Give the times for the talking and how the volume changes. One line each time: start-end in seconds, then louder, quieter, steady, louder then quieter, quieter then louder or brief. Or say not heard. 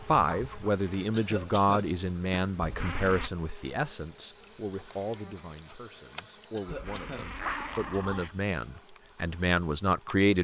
0.1-10.3 quieter then louder.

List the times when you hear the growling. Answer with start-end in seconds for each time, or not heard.
2.6-3.3, 6.7-8.3.